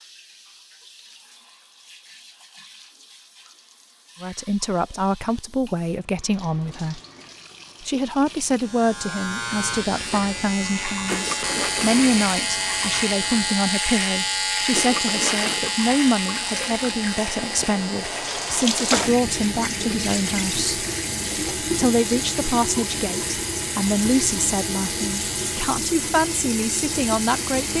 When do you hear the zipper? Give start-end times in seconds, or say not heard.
11.1-12.2, 14.7-15.7.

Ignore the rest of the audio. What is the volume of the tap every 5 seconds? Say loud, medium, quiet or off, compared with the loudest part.
quiet, quiet, medium, loud, loud, loud.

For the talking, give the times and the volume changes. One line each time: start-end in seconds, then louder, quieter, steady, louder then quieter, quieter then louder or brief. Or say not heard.
4.2-7.0 brief
7.8-20.9 steady
21.6-27.7 steady.